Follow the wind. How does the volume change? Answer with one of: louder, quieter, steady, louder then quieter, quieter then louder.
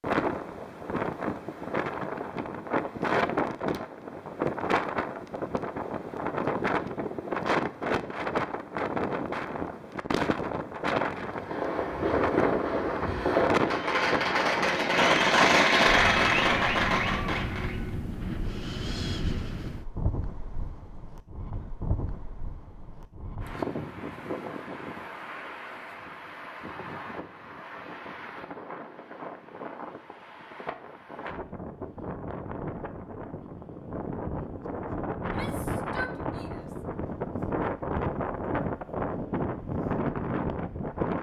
quieter then louder.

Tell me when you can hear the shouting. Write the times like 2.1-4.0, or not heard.
35.2-36.8.